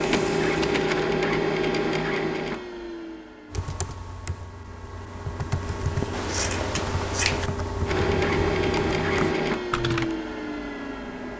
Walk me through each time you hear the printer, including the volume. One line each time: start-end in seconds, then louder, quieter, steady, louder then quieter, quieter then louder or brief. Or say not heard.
0.0-11.3 quieter then louder.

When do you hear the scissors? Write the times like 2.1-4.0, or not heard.
6.1-7.5.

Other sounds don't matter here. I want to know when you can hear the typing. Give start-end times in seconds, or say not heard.
3.5-10.2.